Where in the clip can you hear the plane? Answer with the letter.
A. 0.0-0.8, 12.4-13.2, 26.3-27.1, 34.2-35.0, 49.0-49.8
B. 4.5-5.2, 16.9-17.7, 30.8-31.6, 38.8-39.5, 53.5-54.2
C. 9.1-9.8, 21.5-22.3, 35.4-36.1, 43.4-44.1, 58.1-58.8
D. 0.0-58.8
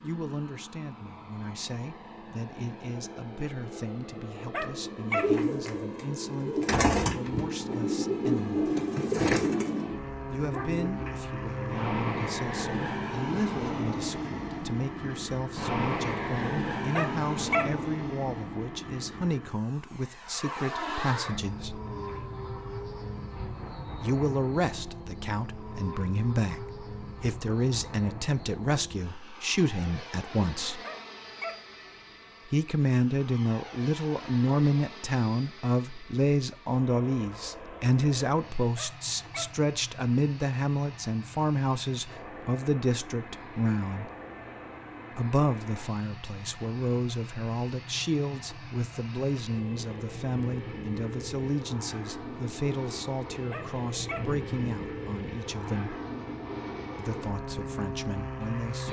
D.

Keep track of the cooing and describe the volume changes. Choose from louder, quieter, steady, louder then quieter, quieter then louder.
louder then quieter.